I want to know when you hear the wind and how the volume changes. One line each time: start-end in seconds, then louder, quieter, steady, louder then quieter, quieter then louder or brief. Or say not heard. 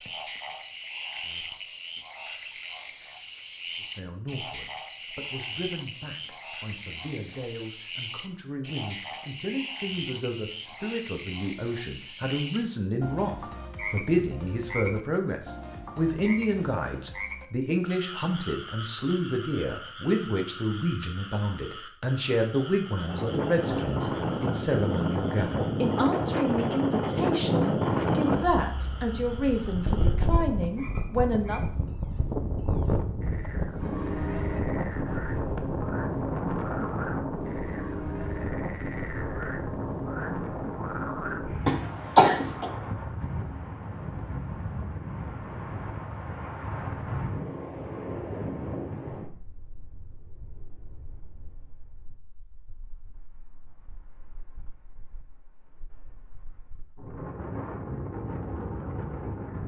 23.0-59.6 quieter.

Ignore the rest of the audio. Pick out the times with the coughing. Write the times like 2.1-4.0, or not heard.
41.6-42.7.